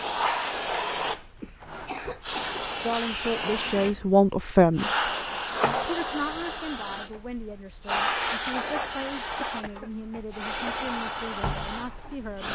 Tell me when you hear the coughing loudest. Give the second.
2 s.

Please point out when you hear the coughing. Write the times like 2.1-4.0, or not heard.
1.4-2.6, 9.4-9.9.